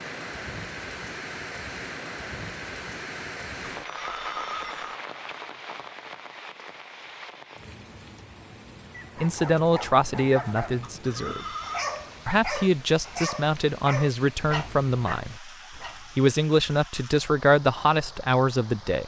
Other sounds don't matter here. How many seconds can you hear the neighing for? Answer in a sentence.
You can hear the neighing for 2 seconds altogether.